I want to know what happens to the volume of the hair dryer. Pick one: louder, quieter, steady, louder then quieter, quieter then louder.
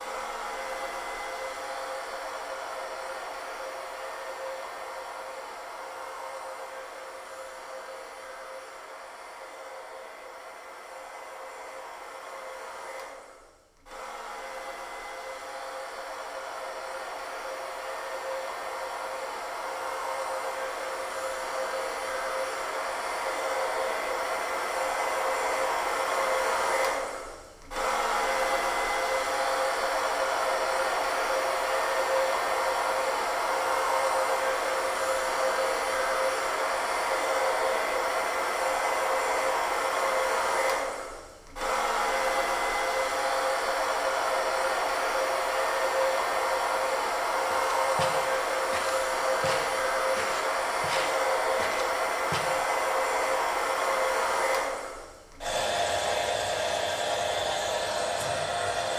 louder.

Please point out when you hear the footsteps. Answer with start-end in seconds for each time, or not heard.
47.5-52.7.